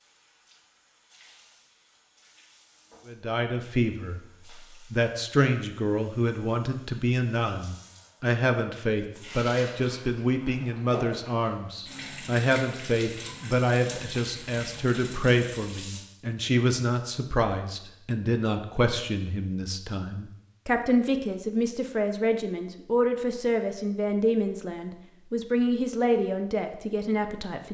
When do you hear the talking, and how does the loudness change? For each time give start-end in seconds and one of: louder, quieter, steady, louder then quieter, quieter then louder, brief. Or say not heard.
3.0-4.2 brief
4.9-27.6 steady.